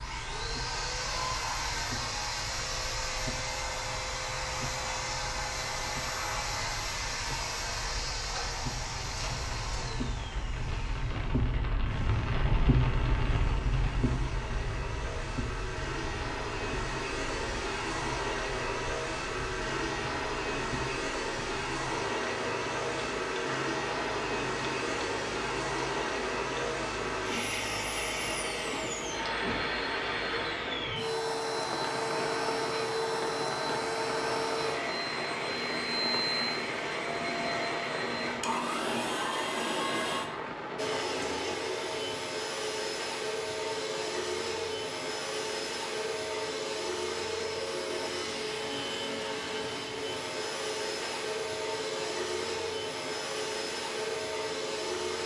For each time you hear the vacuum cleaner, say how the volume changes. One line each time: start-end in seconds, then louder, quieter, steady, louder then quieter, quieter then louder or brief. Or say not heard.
0.0-55.2 steady.